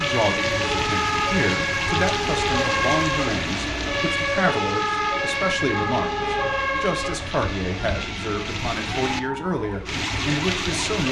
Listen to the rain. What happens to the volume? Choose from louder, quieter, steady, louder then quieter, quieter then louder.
quieter then louder.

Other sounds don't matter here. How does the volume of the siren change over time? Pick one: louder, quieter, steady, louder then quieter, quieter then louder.
quieter.